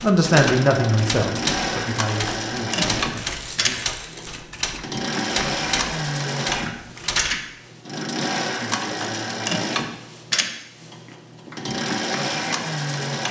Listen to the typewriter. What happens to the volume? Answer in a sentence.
The loudness of the typewriter stays about the same.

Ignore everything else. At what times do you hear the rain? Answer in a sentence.
The rain can't be heard in this clip.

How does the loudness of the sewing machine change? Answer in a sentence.
The volume of the sewing machine stays about the same.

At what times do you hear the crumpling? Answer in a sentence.
The crumpling can be heard from 3.2 to 4.5 s.